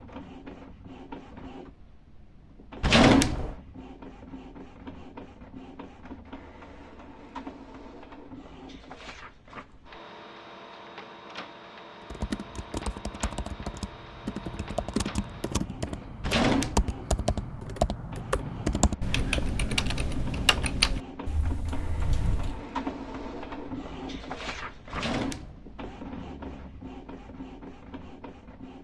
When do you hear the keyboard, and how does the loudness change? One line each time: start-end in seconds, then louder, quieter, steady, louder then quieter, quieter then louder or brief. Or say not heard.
12.0-22.6 louder.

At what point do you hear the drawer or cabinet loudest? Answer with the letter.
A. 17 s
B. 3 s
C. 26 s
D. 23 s
B.